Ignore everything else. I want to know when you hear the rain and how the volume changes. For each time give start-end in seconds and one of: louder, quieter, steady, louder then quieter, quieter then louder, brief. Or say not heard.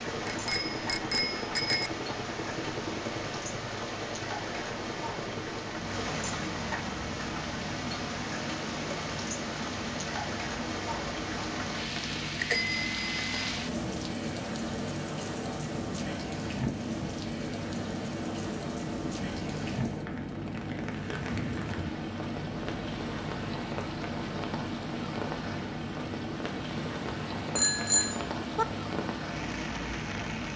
0.0-30.5 steady.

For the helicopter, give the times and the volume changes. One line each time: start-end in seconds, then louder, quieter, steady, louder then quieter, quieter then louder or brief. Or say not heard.
0.0-30.5 steady.